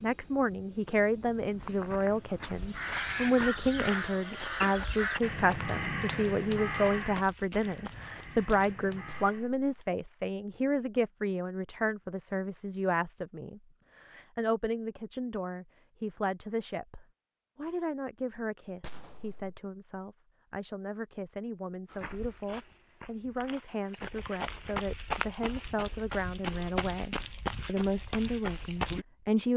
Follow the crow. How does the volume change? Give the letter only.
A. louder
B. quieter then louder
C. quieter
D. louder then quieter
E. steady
C.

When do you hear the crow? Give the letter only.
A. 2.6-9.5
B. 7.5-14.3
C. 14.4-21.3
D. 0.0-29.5
A.